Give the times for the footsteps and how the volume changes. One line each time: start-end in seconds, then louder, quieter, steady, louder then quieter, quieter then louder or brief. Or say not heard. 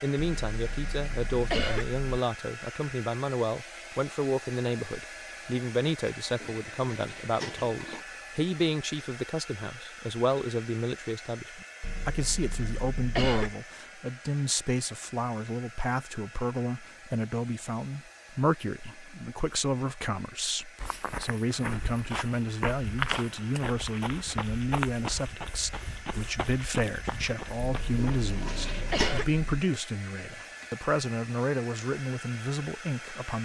20.8-28.3 louder then quieter.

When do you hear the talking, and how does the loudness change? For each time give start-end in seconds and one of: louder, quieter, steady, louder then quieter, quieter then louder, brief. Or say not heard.
0.0-33.4 steady.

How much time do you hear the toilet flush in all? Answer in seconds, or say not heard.
3 s.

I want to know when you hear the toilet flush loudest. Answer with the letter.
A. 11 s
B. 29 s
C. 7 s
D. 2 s
B.